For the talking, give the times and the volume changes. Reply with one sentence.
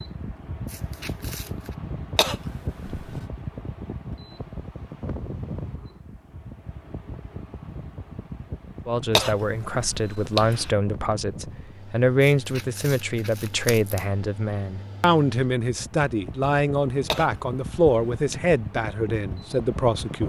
The talking can be heard from 8.8 to 20.2 s, at a steady volume.